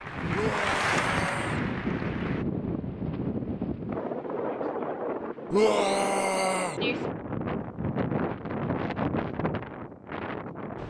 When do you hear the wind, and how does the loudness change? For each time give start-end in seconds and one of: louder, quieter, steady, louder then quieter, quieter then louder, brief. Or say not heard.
0.0-10.8 steady.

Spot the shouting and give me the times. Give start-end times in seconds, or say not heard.
0.3-1.6, 5.5-6.8.